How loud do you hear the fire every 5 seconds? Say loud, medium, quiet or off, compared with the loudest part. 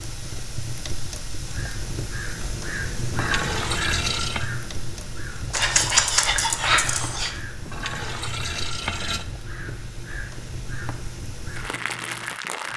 loud, medium, loud.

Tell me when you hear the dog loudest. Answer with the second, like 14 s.
6 s.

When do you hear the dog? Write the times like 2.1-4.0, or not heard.
5.5-7.3.